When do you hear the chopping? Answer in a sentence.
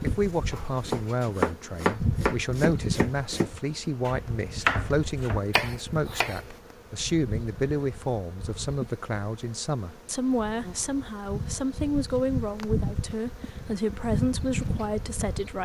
The chopping can be heard from 0.0 to 6.5 s.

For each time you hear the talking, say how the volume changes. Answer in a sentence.
The talking can be heard from 0.0 to 15.6 s, at a steady volume.